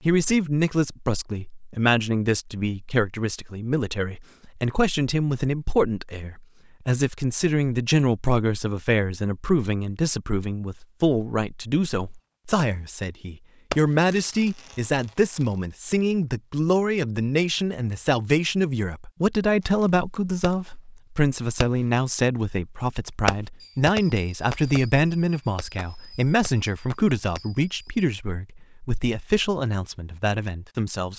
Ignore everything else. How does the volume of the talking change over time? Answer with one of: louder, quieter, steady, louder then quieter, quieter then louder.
steady.